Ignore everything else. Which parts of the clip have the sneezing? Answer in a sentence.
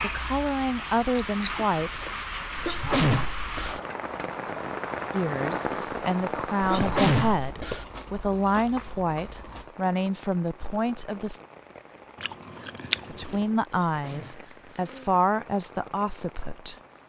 The sneezing can be heard from 2.5 to 3.8 s, from 6.6 to 7.8 s and from 13.8 to 14.9 s.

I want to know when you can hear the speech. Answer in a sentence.
You can hear the speech from 0.0 to 2.0 s, from 5.1 to 11.4 s and from 13.1 to 16.8 s.